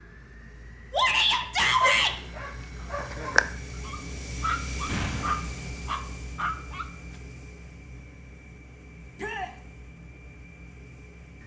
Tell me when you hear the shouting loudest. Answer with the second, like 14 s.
2 s.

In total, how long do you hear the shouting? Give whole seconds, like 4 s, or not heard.
2 s.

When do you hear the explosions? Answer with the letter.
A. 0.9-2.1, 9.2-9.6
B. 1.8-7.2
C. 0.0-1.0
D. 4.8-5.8
D.